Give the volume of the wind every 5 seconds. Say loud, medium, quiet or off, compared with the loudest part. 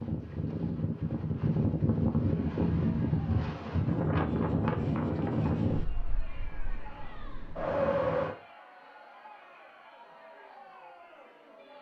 loud, loud, off.